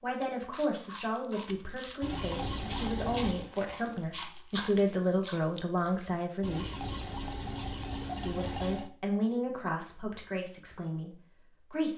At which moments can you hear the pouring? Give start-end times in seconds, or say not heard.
2.0-3.5, 6.4-8.9.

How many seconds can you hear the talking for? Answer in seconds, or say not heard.
10 s.